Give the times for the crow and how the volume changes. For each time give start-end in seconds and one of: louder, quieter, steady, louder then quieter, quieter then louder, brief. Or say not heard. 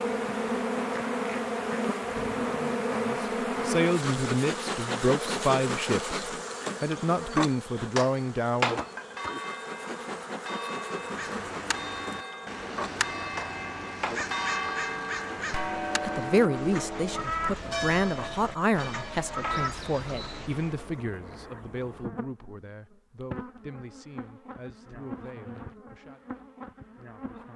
10.9-20.9 steady.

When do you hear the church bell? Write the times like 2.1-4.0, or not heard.
8.9-20.4.